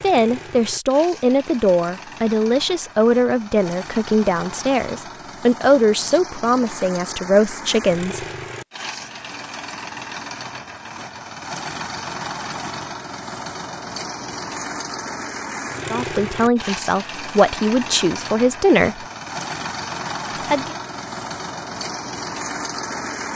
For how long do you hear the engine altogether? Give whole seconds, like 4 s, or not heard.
23 s.